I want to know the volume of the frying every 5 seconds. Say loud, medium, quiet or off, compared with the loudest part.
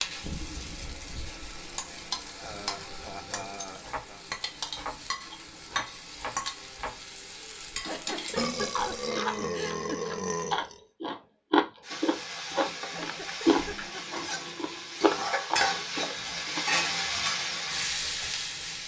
medium, medium, medium, loud.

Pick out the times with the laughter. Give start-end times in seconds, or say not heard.
2.4-4.2, 7.8-10.0, 12.8-14.3.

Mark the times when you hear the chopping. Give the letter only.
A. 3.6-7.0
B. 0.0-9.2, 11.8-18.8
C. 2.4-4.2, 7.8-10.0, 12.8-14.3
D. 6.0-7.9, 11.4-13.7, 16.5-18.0
A.